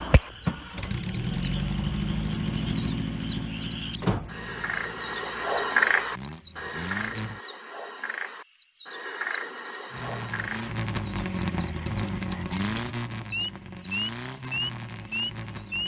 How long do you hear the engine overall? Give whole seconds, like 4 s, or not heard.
13 s.